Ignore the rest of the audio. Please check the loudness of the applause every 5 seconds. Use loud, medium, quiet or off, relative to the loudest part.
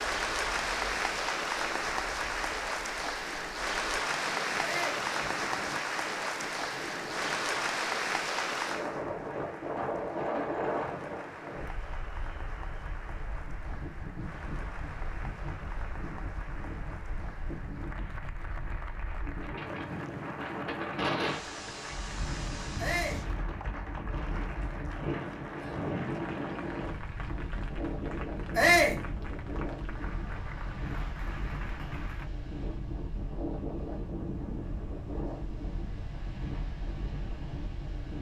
loud, loud, quiet, quiet, quiet, quiet, quiet, off.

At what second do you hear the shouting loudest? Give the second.
29 s.